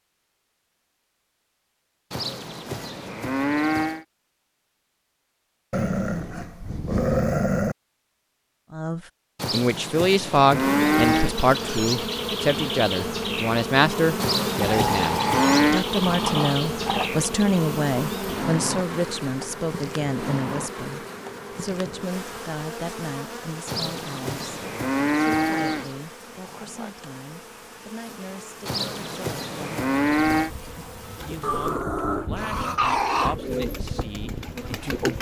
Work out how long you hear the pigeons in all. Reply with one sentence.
The pigeons can be heard for 4 seconds in total.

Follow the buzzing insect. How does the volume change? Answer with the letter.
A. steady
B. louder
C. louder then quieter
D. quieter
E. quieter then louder
D.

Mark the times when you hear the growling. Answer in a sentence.
You can hear the growling from 5.7 to 7.8 s, from 14.6 to 17.1 s and from 31.4 to 33.4 s.